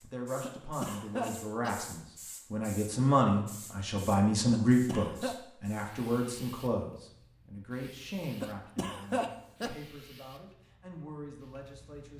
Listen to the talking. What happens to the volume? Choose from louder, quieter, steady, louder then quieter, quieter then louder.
louder then quieter.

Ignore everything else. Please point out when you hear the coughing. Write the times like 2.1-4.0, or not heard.
0.4-1.9, 4.5-5.3, 8.4-9.8.